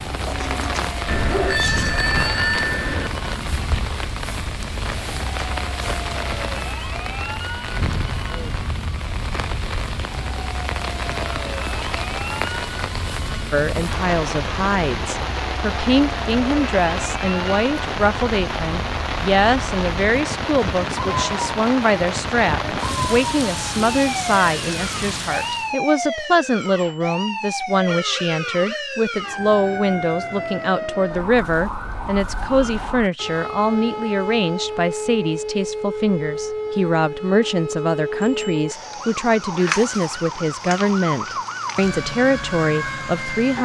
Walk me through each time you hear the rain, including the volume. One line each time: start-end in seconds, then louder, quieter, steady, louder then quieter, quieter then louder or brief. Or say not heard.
0.0-25.8 steady.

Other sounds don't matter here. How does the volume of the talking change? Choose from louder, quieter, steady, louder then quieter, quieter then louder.
steady.